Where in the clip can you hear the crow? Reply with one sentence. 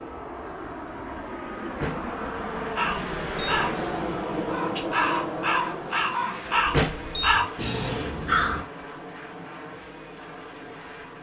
The crow can be heard from 2.8 to 8.7 s.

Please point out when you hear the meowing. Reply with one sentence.
The meowing can't be heard in this clip.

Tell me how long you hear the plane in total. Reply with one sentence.
You can hear the plane for 11 seconds altogether.